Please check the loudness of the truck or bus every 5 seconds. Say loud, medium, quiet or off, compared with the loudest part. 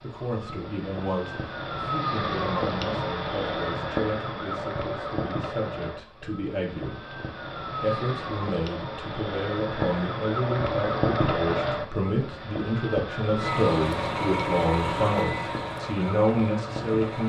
off, off, loud, medium.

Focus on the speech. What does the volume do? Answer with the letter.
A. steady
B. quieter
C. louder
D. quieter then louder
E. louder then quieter
C.